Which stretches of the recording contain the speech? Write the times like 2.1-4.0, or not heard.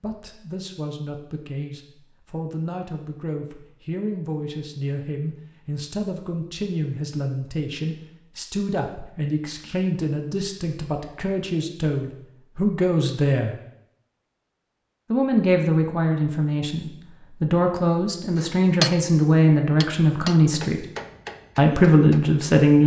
0.0-13.6, 15.1-20.9, 21.6-22.8.